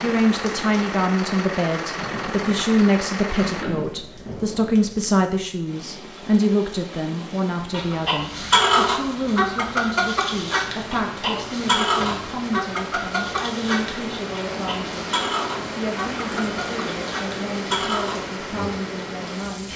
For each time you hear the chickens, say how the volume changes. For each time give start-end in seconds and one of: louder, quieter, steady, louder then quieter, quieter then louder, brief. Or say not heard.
7.7-18.3 quieter.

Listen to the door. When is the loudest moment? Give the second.
4 s.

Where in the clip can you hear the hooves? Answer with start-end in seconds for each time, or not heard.
not heard.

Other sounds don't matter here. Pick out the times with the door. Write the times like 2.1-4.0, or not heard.
3.4-4.0, 11.2-12.2.